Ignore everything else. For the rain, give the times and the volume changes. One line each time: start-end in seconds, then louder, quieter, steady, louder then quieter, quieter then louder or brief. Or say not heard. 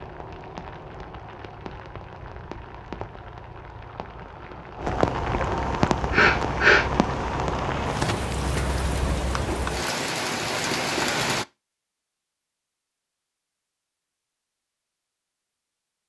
0.0-11.4 louder.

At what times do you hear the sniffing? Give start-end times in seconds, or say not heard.
5.5-6.8.